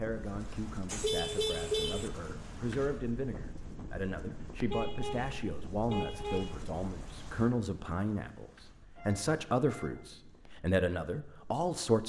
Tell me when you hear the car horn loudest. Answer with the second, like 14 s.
2 s.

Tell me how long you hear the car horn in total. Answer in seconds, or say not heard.
4 s.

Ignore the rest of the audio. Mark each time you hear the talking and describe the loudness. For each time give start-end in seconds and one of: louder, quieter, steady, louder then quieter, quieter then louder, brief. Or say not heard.
0.0-12.0 louder.